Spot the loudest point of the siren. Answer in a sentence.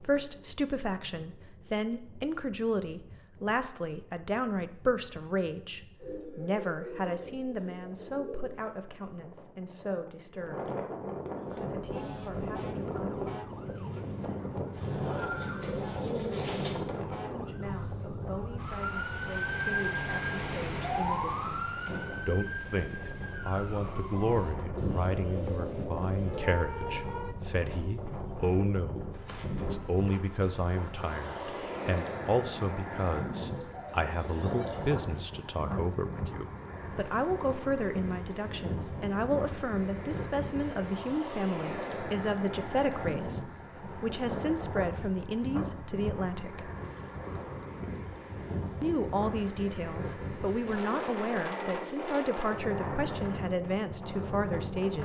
The loudest moment of the siren is at 20 seconds.